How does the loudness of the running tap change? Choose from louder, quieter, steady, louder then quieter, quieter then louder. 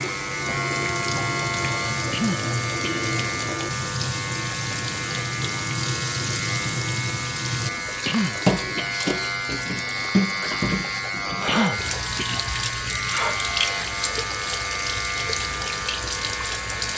steady.